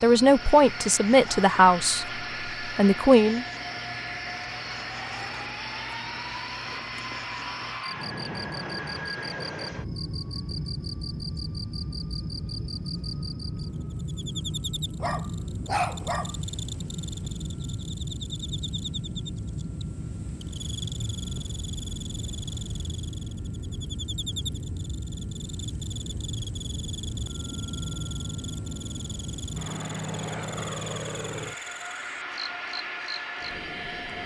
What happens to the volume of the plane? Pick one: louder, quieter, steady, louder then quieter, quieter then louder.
steady.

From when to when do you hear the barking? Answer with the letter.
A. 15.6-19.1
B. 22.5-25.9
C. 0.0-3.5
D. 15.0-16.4
D.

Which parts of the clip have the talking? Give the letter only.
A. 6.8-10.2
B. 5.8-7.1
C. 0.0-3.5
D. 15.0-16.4
C.